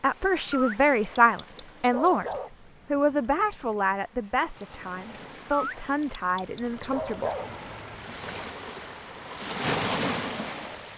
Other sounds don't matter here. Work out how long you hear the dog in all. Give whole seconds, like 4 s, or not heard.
4 s.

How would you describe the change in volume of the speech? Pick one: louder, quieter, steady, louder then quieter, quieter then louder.
quieter.